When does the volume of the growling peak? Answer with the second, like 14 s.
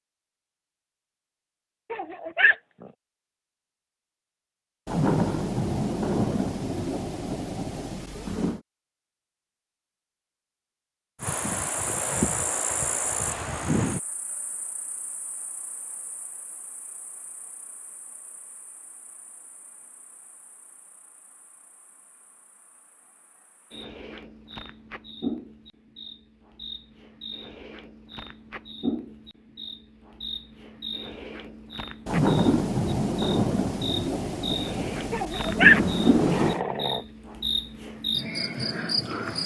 36 s.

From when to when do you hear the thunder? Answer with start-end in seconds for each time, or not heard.
4.8-8.6, 32.0-36.6.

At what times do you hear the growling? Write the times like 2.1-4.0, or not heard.
1.9-2.5, 35.1-37.0.